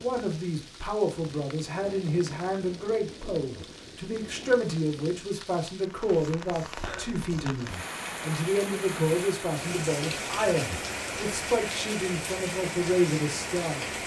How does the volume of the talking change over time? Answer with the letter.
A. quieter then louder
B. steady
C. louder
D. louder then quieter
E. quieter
B.